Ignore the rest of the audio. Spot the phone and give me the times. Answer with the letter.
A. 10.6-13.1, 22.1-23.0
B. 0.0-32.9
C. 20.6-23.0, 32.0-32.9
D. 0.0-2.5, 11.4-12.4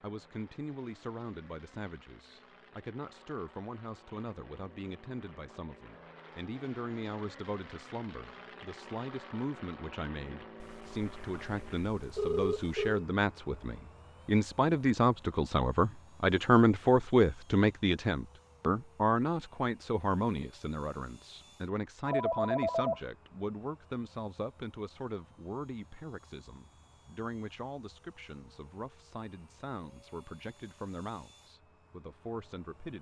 A.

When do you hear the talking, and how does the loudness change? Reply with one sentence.
The talking can be heard from 0.0 to 32.9 s, getting louder then quieter.